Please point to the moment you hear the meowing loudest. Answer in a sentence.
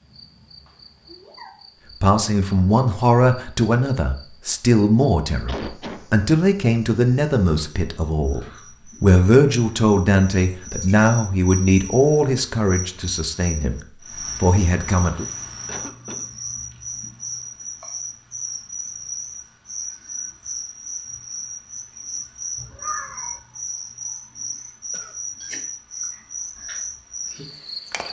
The loudest moment of the meowing is at 23 seconds.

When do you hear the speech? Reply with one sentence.
You can hear the speech from 2.0 to 15.2 s.